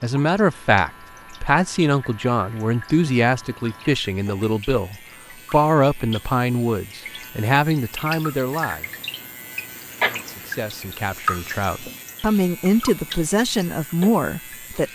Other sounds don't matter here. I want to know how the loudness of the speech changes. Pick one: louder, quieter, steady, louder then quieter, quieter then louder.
quieter then louder.